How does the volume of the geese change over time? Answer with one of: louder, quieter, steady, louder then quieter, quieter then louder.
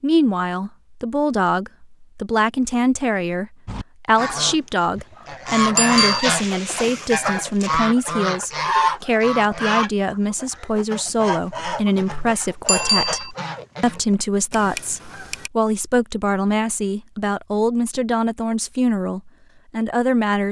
quieter.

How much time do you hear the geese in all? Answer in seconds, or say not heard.
12 s.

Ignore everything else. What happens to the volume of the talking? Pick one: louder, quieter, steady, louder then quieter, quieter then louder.
steady.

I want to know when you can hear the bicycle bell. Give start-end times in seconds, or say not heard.
5.8-6.2, 12.7-13.3.